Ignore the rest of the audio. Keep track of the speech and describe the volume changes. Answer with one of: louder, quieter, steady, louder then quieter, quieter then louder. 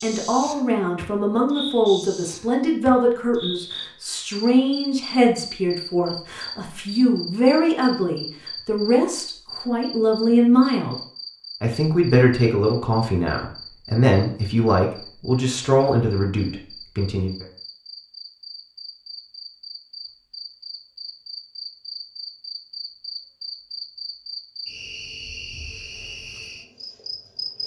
steady.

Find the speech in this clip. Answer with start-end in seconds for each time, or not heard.
0.0-10.9, 11.6-17.4.